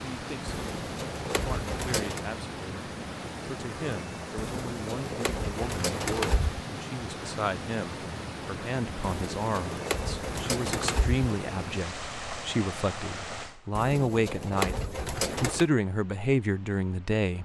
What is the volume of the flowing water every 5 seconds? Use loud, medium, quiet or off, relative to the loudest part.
loud, loud, loud, quiet.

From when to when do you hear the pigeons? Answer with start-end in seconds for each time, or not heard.
0.5-2.2, 4.3-6.7, 9.0-11.2, 13.8-15.7.